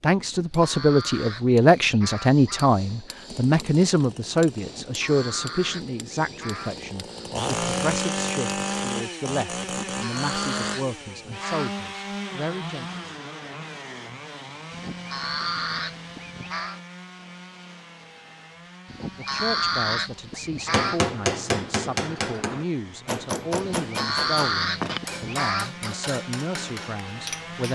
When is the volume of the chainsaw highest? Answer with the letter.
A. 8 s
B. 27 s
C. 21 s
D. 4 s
A.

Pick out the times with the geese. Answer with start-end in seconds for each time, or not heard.
0.2-2.8, 4.6-6.8, 9.7-11.8, 14.7-16.8, 18.9-21.1, 23.6-25.9.